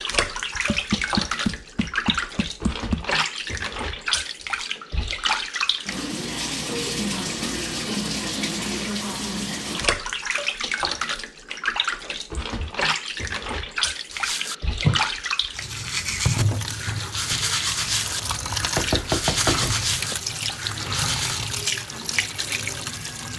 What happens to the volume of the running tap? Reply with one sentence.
The volume of the running tap stays about the same.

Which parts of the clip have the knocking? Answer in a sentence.
You can hear the knocking from 0.6 to 3.1 s and from 18.8 to 20.2 s.